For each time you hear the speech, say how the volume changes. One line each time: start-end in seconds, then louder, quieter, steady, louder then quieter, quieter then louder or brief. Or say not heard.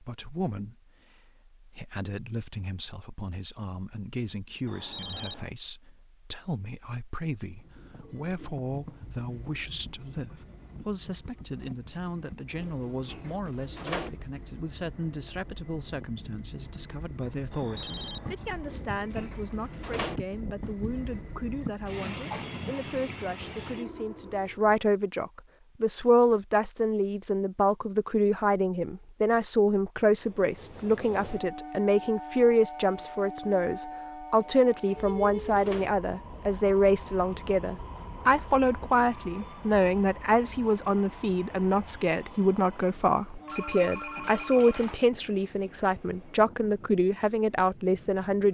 0.0-48.4 louder.